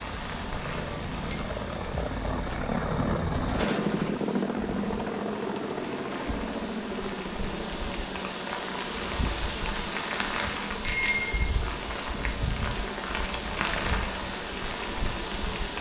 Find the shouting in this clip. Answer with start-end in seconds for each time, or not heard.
not heard.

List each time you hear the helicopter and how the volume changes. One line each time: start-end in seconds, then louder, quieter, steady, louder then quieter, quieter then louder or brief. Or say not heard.
0.0-15.7 quieter.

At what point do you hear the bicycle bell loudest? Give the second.
11 s.